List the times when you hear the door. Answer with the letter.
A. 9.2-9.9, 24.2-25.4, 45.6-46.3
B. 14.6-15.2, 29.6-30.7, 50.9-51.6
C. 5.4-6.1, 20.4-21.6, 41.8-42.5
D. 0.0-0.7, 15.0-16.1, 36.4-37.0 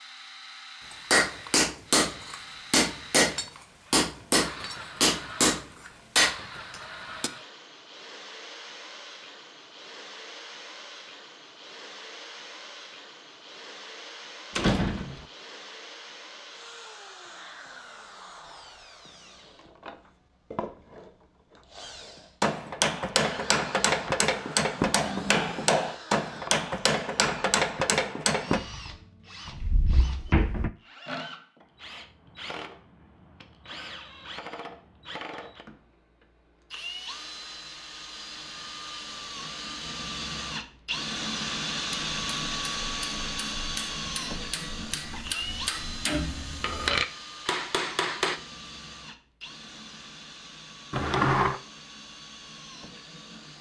B.